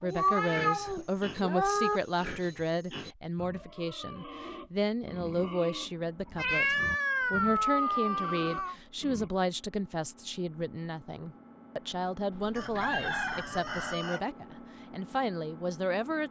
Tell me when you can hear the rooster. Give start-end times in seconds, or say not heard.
12.6-14.2.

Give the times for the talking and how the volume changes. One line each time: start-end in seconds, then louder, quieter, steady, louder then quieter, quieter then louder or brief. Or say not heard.
0.0-16.2 steady.